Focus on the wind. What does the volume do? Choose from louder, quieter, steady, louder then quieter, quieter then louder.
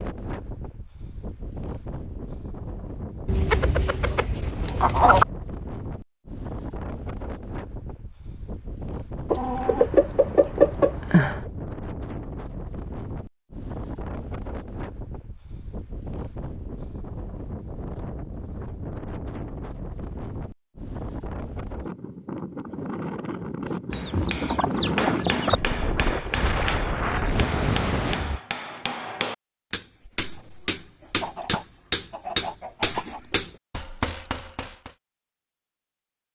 louder.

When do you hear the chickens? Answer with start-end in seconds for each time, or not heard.
3.2-5.2, 9.3-11.4, 23.9-25.6, 31.2-33.2.